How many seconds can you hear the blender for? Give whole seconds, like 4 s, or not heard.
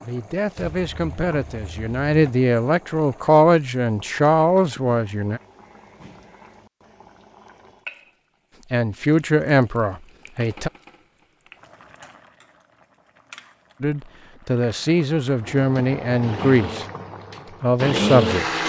3 s.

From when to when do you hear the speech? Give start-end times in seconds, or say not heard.
0.0-5.4, 8.7-10.7, 13.8-16.9, 17.6-18.6.